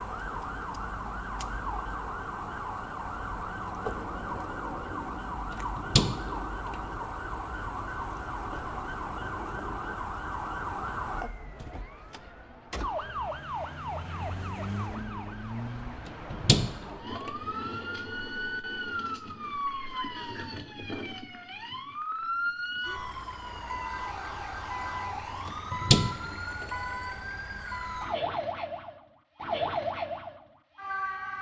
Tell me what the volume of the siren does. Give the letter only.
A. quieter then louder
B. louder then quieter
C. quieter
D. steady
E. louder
D.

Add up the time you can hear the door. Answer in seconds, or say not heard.
3 s.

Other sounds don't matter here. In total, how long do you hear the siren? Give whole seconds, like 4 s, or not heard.
31 s.